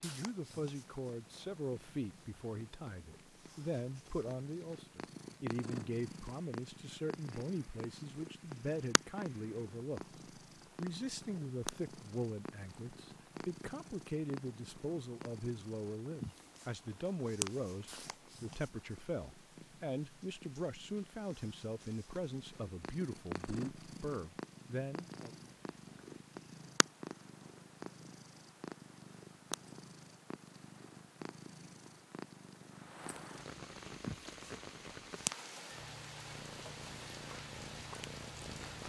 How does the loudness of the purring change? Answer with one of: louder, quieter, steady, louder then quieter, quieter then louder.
steady.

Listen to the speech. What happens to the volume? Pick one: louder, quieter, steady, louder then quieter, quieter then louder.
steady.